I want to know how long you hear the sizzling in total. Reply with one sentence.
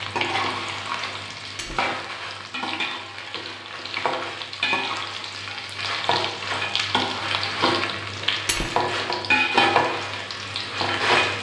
You can hear the sizzling for 11 seconds altogether.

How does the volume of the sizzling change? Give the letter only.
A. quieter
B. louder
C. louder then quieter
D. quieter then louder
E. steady
B.